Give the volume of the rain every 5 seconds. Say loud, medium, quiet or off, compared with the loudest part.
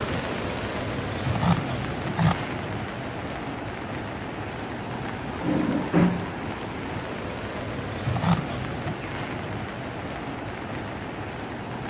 loud, loud, medium.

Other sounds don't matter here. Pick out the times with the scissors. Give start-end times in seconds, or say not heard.
1.2-2.4, 8.1-9.0.